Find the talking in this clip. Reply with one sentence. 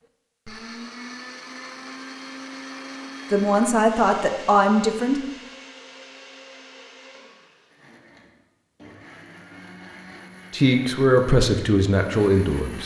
You can hear the talking from 3.3 to 5.2 s and from 10.5 to 12.8 s.